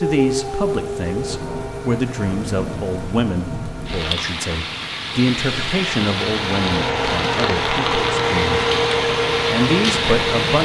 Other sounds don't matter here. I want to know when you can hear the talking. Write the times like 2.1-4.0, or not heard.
0.0-8.6, 9.4-10.6.